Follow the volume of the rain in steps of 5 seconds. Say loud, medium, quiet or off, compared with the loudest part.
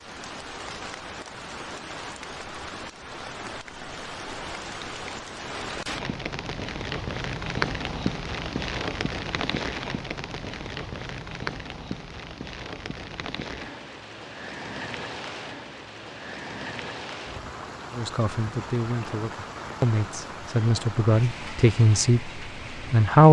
medium, loud, medium, medium, medium.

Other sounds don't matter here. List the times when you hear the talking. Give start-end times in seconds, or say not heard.
17.9-23.2.